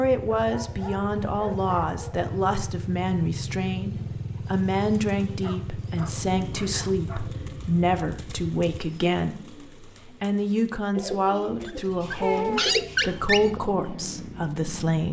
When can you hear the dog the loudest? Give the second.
13 s.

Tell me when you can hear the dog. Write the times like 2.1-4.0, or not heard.
0.3-2.3, 5.4-7.2, 11.6-13.5.